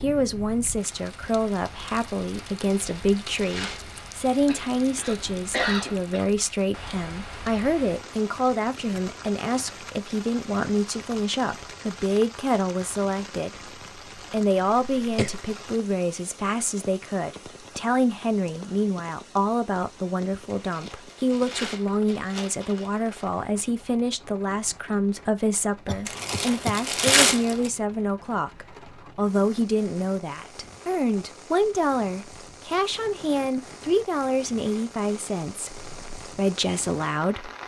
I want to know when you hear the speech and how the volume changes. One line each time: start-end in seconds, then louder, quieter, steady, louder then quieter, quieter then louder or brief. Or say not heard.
0.0-13.6 steady
14.3-37.5 steady.